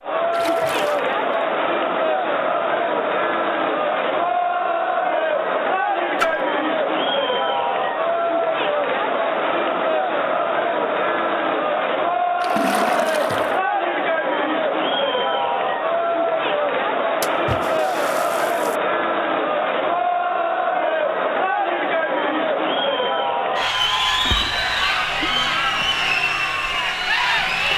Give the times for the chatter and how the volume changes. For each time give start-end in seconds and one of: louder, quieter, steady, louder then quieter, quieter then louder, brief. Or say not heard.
0.0-27.7 steady.